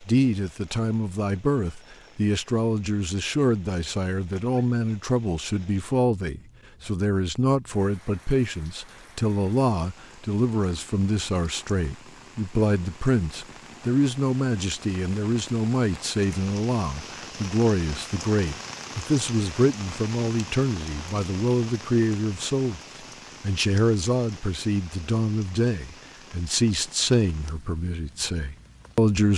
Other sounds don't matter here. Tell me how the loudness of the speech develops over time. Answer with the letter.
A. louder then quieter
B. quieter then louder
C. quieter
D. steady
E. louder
D.